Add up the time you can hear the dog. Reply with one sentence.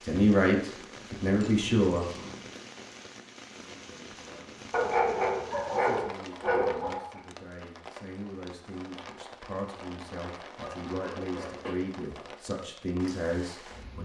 The dog can be heard for 5 seconds in total.